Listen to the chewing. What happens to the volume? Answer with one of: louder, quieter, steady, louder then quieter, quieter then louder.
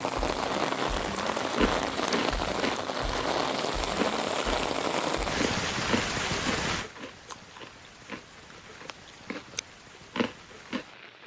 quieter then louder.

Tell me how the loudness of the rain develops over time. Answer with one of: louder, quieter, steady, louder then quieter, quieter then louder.
quieter.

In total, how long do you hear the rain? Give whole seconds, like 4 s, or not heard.
11 s.